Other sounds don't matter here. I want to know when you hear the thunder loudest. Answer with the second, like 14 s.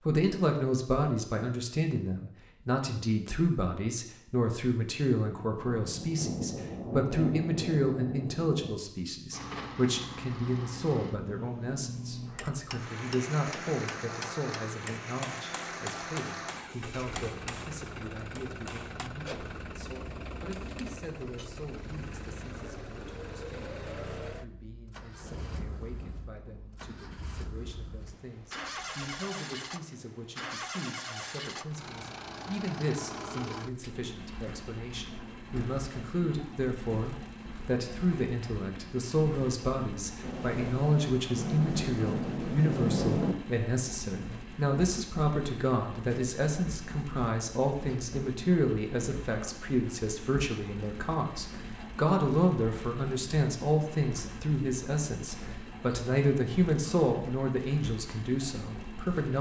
43 s.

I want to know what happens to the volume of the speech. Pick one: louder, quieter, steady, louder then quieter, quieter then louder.
quieter then louder.